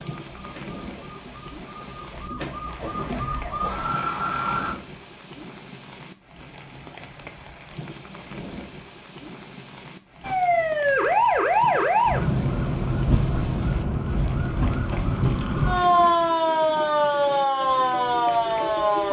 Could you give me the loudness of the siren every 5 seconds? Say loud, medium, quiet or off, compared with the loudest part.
medium, off, loud, loud.